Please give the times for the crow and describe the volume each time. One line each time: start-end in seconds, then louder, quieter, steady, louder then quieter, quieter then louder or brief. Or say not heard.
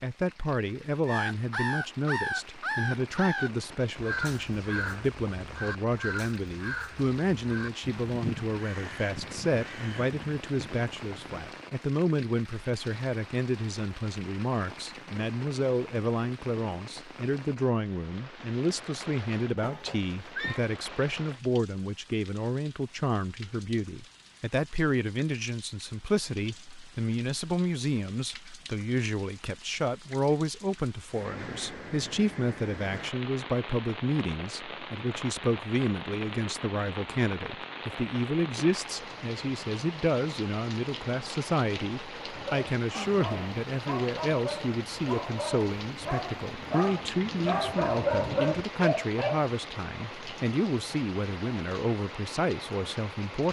1.1-11.4 quieter.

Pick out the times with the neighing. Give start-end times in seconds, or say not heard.
19.6-20.6.